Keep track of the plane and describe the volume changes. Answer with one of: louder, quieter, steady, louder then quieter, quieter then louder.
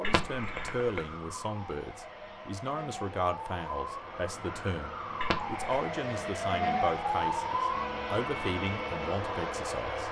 louder.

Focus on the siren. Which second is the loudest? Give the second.
7 s.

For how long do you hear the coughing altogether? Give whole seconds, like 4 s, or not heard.
2 s.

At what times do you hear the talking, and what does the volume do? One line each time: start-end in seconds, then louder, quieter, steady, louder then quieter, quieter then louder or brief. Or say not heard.
0.0-10.0 steady.